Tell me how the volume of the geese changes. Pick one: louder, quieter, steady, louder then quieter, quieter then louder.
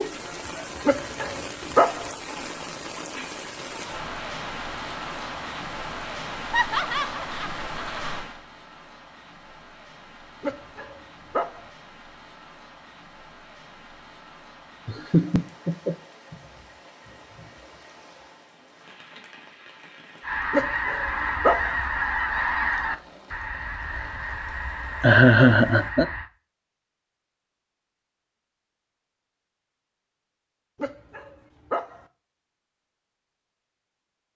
quieter.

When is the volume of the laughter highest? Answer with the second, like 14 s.
25 s.